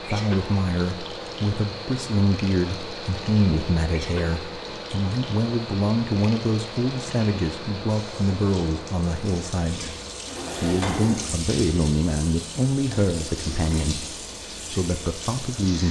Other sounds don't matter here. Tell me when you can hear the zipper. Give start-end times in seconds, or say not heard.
10.2-11.3.